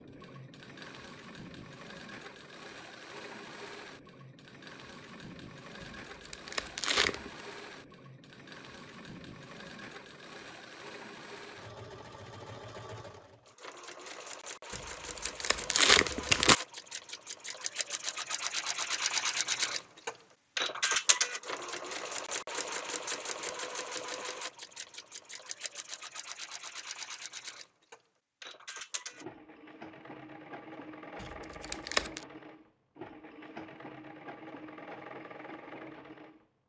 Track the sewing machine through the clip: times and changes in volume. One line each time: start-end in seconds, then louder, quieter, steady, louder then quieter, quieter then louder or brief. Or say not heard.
0.0-36.5 louder then quieter.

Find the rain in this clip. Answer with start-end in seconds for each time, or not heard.
not heard.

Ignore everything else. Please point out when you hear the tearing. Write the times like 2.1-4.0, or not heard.
5.8-7.3, 14.8-16.6, 31.2-32.2.